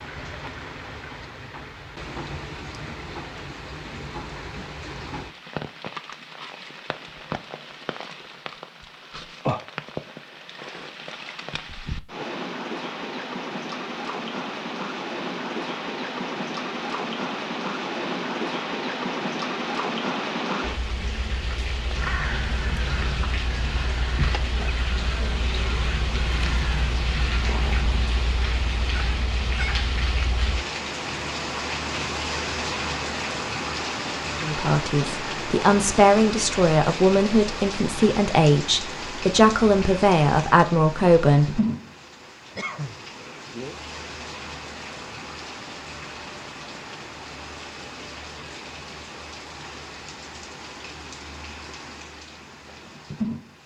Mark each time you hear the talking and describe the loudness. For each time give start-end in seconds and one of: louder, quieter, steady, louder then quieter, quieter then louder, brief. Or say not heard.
34.4-41.6 steady.